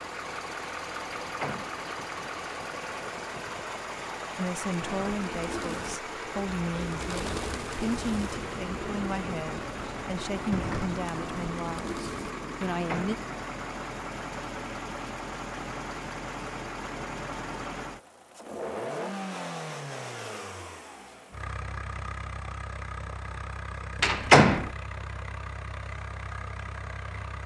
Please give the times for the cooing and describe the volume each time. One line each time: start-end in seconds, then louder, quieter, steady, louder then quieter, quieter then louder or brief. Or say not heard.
4.7-12.3 steady.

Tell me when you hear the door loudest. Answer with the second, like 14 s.
24 s.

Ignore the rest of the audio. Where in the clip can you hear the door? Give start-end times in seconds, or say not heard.
1.2-1.8, 12.7-13.2, 24.0-24.7.